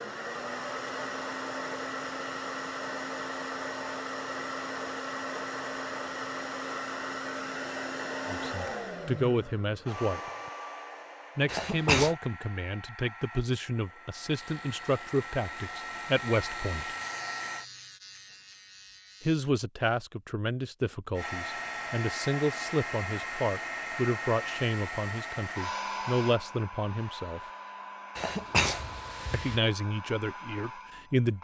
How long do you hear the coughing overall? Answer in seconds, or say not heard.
2 s.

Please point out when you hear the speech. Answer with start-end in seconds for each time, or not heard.
8.2-10.2, 11.3-16.9, 19.2-27.4, 29.3-31.3.